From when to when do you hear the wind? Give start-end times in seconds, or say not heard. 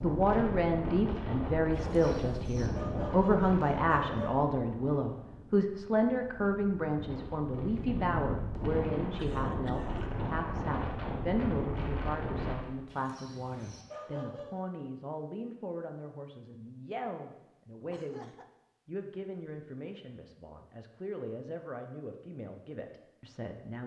0.0-12.8.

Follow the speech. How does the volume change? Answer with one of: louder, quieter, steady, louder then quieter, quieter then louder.
quieter.